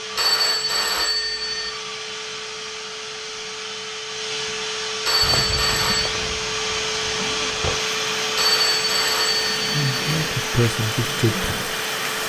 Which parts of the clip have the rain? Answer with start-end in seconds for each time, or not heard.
5.2-12.2.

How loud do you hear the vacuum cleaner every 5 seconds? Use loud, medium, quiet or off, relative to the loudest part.
medium, loud, loud.